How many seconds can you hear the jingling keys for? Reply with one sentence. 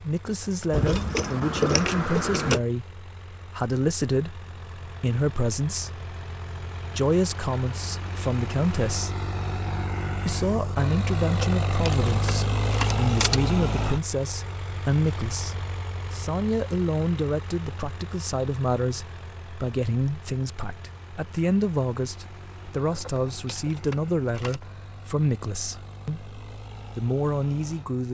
The jingling keys can be heard for 6 seconds in total.